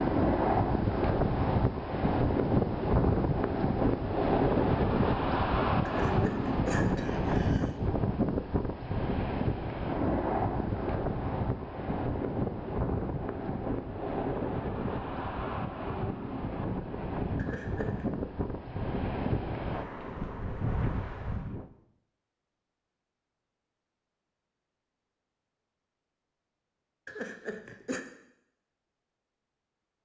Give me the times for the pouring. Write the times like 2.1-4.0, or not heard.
not heard.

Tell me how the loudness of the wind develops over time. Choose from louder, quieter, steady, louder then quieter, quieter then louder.
quieter.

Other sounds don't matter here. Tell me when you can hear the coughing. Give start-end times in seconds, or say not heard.
5.8-7.8, 17.4-18.1, 27.1-28.1.